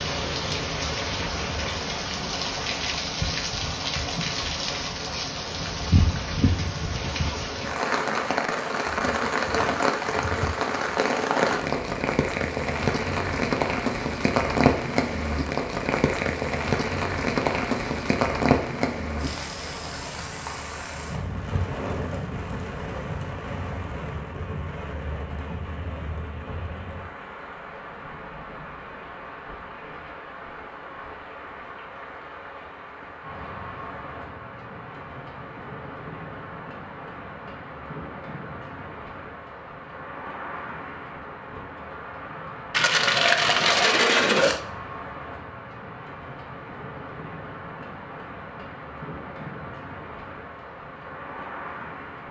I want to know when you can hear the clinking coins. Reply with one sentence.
The clinking coins can be heard from 42.7 to 44.6 s.